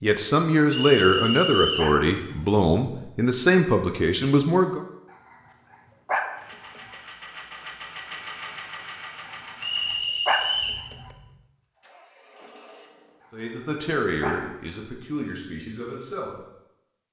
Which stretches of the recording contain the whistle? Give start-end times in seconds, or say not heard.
0.7-1.9, 9.6-10.8.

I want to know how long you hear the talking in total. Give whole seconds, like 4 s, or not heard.
8 s.